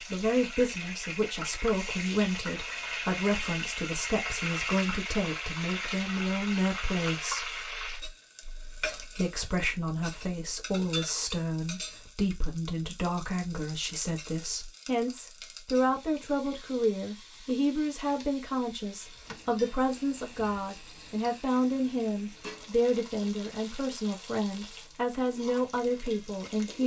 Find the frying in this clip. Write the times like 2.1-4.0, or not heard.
0.0-26.8.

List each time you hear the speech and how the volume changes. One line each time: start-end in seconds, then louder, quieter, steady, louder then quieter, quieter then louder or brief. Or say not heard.
0.1-26.8 steady.